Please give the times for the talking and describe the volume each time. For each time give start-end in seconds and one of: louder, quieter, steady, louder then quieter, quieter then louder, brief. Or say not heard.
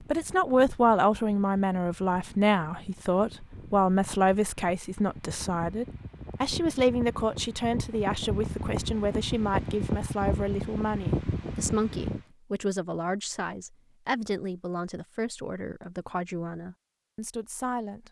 0.1-18.0 quieter.